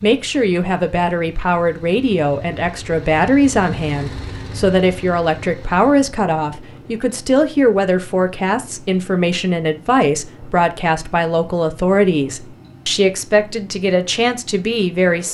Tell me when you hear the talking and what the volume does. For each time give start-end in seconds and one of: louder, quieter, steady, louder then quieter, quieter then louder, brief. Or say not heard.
0.0-15.2 steady.